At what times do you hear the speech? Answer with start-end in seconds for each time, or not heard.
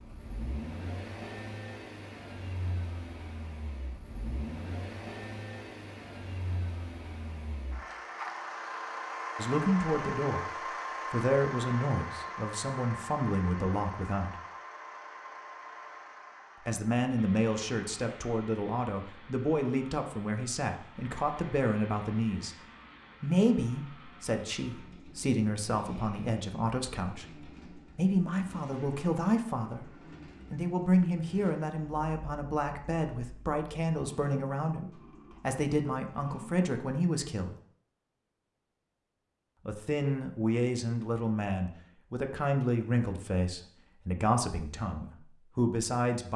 9.3-10.4, 11.1-14.3, 16.6-22.6, 23.2-29.9, 30.5-37.5, 39.6-46.3.